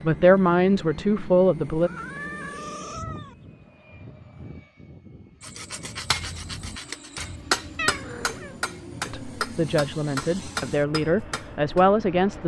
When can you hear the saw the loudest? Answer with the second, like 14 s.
6 s.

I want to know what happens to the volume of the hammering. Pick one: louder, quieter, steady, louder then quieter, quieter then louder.
louder then quieter.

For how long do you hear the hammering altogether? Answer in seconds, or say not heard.
6 s.